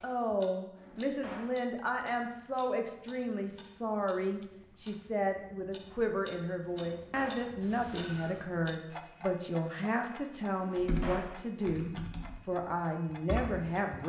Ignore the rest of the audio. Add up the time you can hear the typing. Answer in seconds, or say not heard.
3 s.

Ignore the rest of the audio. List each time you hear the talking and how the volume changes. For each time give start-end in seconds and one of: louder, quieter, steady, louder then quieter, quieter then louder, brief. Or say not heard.
0.0-14.0 steady.